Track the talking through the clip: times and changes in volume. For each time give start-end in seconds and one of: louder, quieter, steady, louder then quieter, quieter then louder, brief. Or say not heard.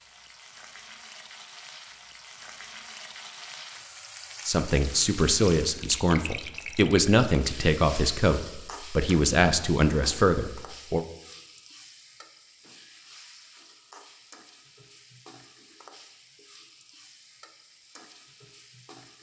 4.5-11.1 steady.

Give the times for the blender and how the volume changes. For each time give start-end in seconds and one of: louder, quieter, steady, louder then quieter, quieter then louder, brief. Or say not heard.
not heard.